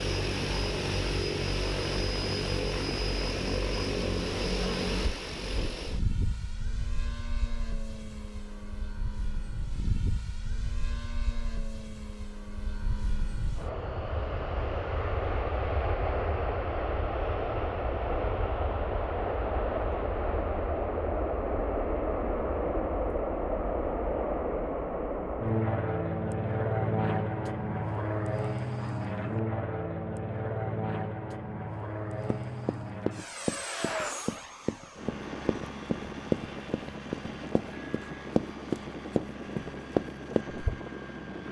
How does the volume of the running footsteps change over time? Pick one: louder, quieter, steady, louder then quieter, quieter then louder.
louder.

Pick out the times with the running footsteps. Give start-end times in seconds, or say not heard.
32.3-40.6.